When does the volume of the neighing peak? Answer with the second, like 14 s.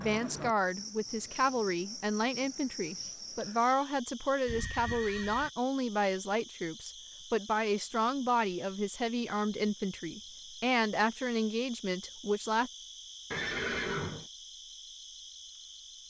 14 s.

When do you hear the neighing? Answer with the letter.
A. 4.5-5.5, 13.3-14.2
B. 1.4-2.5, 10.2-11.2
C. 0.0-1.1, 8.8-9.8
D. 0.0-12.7
A.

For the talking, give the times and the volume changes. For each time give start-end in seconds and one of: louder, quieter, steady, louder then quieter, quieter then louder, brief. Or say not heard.
0.0-12.7 steady.